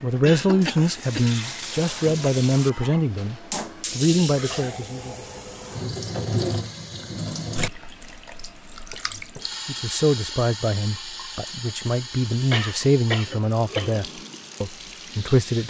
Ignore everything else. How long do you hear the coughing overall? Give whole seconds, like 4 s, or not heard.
3 s.